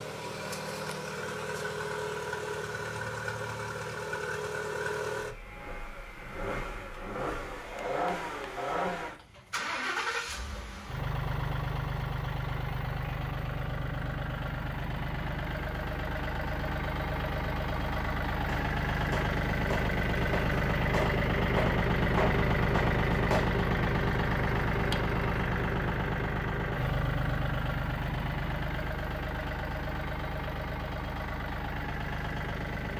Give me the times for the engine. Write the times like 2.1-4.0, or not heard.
0.0-32.9.